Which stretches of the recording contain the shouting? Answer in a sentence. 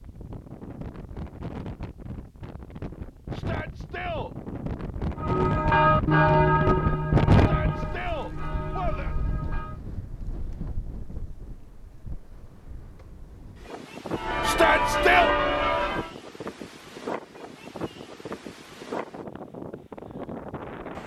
You can hear the shouting from 3.3 to 4.3 s, from 7.3 to 9.2 s and from 14.4 to 15.3 s.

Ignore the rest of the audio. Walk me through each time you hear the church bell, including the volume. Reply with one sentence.
You can hear the church bell from 5.2 to 9.8 s, getting quieter; and briefly from 14.1 to 16.1 s.